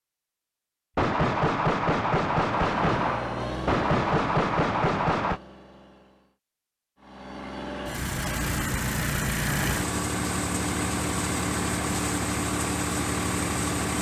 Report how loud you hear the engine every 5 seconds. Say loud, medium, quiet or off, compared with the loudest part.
medium, loud, loud.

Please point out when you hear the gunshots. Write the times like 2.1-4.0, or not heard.
0.9-5.4.